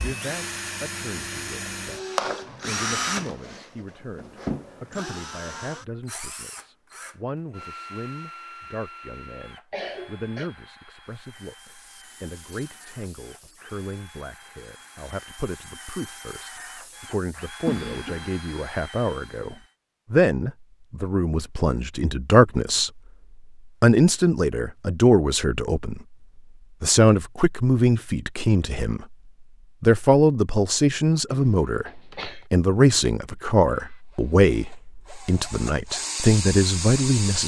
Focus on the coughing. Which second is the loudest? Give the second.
18 s.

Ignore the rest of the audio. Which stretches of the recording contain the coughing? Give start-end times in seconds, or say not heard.
9.7-10.5, 17.6-18.2, 31.3-32.5.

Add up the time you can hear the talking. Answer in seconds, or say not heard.
35 s.